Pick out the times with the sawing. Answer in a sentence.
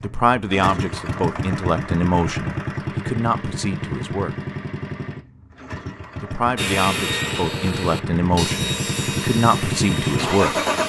The sawing can be heard from 6.5 to 10.8 s.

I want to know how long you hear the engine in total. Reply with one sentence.
The engine can be heard for 11 seconds in total.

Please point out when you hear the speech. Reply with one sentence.
You can hear the speech from 0.0 to 4.4 s and from 6.2 to 10.6 s.